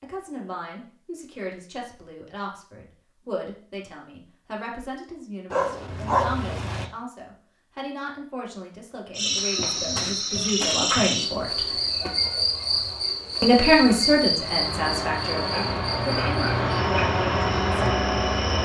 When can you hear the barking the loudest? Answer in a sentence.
The volume of the barking peaks at 6 seconds.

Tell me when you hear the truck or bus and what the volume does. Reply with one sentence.
You can hear the truck or bus from 14.2 to 18.6 s, getting louder.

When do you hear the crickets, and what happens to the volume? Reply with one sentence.
The crickets can be heard from 9.2 to 18.6 s, getting quieter.